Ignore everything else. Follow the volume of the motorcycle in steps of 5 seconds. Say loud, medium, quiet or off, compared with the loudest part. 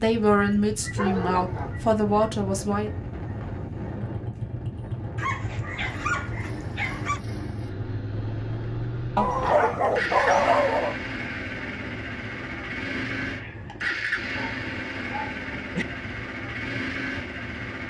medium, medium, loud, loud.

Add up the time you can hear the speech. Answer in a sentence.
The speech can be heard for 3 seconds in total.